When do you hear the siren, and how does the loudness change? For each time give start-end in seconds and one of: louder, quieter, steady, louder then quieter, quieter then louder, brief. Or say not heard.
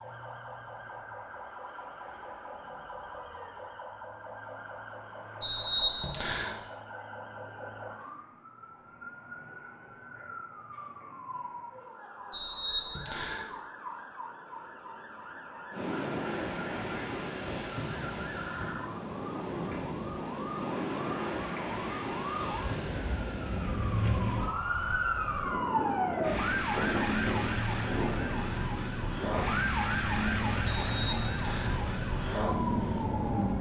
0.0-33.5 louder.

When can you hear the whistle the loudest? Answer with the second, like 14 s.
6 s.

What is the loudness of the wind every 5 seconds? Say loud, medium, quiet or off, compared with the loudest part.
off, off, off, loud, loud, loud, loud.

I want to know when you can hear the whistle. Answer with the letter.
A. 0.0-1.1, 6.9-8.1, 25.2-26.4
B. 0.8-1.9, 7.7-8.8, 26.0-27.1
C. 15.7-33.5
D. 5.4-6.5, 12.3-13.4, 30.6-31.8
D.